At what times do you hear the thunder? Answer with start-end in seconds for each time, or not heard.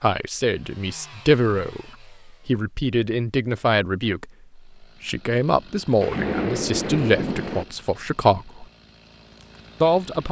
6.0-7.7.